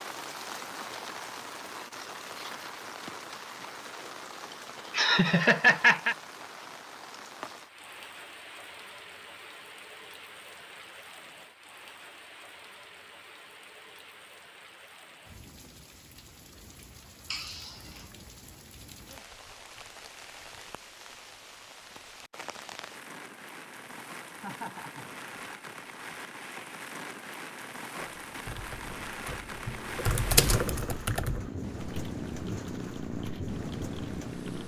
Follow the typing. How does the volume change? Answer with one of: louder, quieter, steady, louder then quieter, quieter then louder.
louder then quieter.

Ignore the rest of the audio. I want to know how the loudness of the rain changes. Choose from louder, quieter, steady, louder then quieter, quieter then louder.
quieter then louder.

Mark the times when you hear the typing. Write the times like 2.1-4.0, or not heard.
27.9-34.6.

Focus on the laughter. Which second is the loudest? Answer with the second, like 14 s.
6 s.